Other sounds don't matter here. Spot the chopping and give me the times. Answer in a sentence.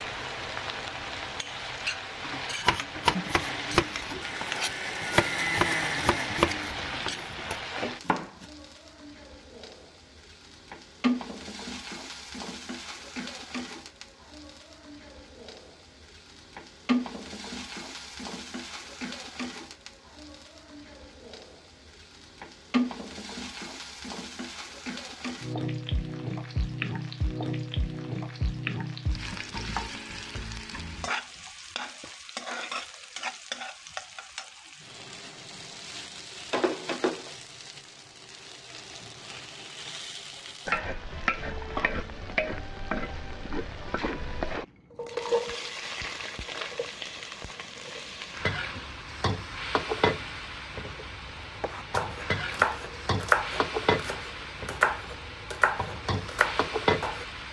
You can hear the chopping from 2.6 to 8.4 s and from 51.6 to 57.2 s.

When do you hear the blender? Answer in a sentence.
The blender can be heard from 3.0 to 6.8 s.